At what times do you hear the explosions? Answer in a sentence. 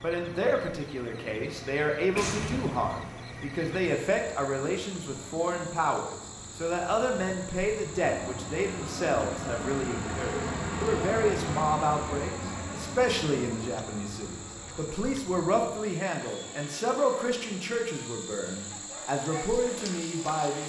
The explosions can be heard from 2.1 to 3.1 s.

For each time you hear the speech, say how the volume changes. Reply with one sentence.
You can hear the speech from 0.0 to 20.6 s, at a steady volume.